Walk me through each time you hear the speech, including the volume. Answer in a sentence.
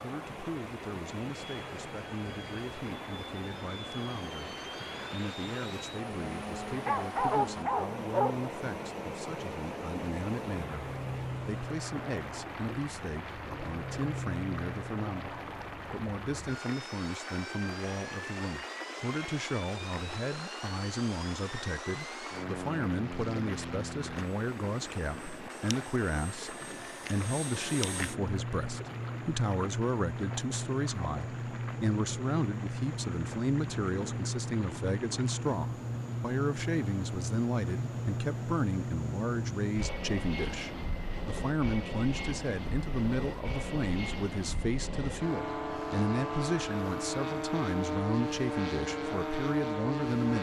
You can hear the speech from 0.0 to 50.3 s, getting louder.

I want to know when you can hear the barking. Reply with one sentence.
The barking can be heard from 6.8 to 8.4 s.